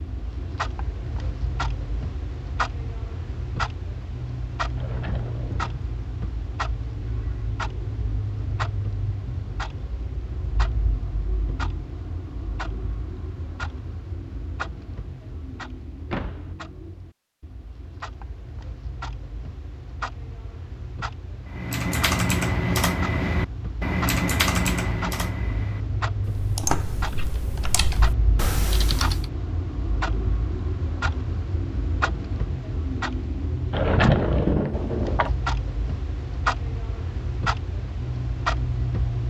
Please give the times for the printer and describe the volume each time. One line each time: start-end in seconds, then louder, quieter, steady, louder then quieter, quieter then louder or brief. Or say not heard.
not heard.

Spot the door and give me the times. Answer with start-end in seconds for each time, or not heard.
4.8-5.8, 16.1-16.6, 33.7-35.4.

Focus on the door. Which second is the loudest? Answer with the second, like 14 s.
34 s.